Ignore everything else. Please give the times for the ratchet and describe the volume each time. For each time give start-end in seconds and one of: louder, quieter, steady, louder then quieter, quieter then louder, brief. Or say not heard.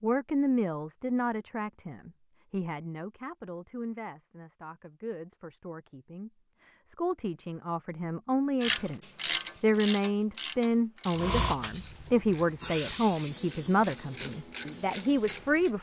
8.6-15.7 quieter then louder.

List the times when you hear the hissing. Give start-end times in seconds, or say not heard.
11.2-15.7.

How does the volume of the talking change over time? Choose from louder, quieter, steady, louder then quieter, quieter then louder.
quieter then louder.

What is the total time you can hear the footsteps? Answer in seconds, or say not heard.
not heard.